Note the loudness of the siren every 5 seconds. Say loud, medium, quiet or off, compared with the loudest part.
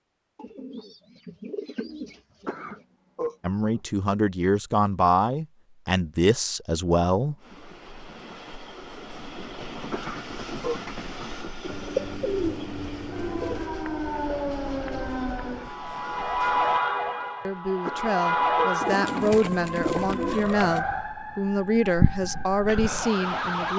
off, off, loud, loud, loud.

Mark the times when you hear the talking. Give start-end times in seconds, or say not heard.
3.4-7.3, 17.4-23.7.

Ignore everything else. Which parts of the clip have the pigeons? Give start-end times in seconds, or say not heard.
0.3-2.9, 11.7-13.7, 18.8-20.8.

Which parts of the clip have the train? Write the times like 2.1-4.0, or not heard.
7.3-16.8.